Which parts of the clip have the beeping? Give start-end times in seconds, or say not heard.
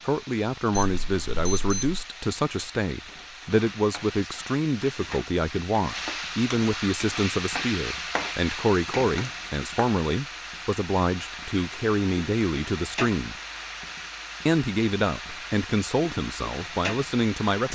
0.8-2.0.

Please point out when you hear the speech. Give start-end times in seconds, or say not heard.
0.0-13.3, 14.4-17.6.